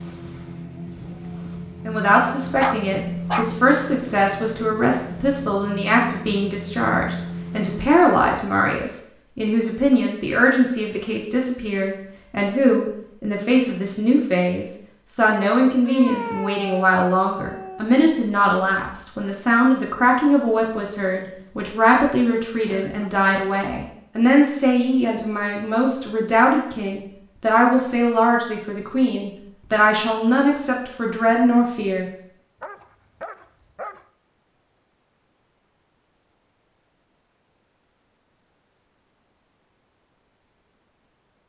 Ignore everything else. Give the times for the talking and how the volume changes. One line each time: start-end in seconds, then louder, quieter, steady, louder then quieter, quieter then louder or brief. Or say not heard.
1.9-32.0 steady.